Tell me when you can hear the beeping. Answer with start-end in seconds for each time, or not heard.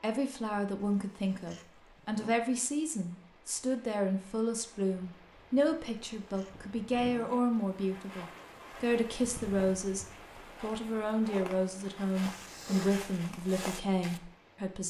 not heard.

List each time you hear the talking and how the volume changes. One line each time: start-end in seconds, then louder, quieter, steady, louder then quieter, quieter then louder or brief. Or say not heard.
0.0-14.8 steady.